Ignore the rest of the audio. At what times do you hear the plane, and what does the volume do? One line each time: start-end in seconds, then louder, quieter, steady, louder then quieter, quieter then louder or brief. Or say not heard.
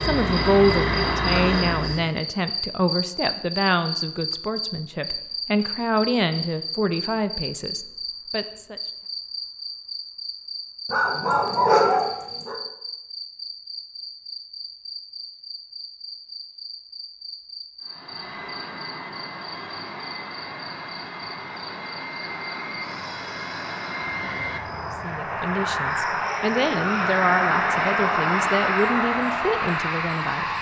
0.0-2.0 brief
17.8-30.5 louder.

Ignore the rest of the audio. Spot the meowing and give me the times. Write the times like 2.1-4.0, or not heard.
not heard.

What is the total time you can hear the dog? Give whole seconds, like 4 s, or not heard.
2 s.